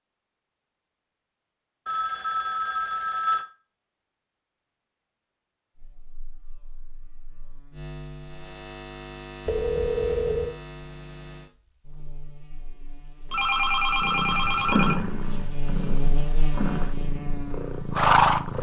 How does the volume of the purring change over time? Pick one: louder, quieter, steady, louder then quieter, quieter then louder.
quieter then louder.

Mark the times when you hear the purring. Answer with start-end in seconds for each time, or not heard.
14.0-18.5.